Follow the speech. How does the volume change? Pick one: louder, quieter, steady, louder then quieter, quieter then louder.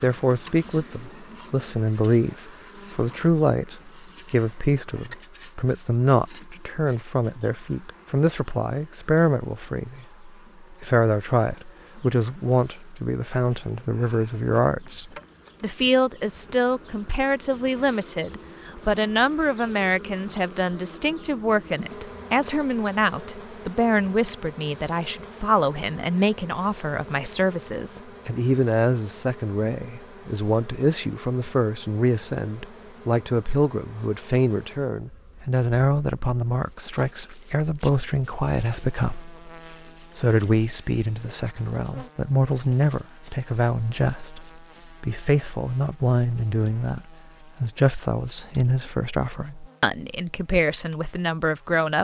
steady.